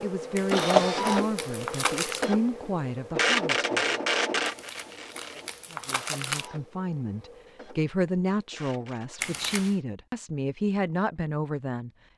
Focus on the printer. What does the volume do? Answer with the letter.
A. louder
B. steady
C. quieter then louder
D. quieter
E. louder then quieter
D.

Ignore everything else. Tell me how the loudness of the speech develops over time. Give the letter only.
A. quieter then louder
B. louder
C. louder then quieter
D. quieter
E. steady
E.